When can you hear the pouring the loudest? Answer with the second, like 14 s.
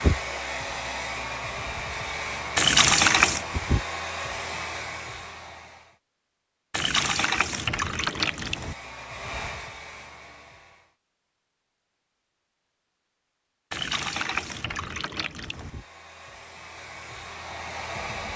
3 s.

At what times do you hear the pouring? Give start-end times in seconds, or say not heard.
2.5-3.5, 6.7-8.8, 13.7-15.7.